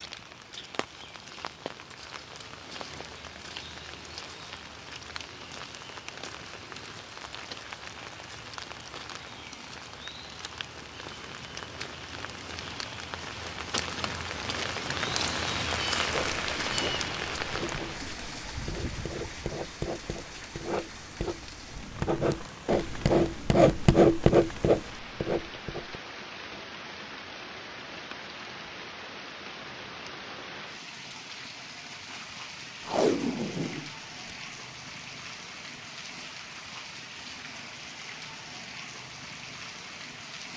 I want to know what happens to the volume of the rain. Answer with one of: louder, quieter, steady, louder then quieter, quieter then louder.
louder then quieter.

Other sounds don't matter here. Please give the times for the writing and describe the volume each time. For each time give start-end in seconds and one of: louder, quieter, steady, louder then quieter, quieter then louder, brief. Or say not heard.
16.1-26.0 louder.